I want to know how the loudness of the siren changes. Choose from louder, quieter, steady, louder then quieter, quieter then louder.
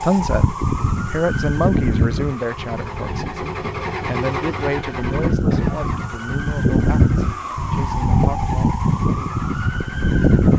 quieter then louder.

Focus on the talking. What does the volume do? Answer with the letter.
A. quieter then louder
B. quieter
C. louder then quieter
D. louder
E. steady
B.